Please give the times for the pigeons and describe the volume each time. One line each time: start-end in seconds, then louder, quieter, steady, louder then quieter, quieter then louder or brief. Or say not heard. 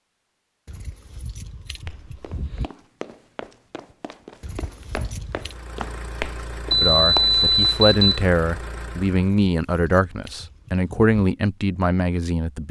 not heard.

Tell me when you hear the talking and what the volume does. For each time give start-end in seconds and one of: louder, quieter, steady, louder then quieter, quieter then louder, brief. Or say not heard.
6.8-12.6 steady.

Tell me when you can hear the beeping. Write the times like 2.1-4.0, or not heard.
6.7-8.2.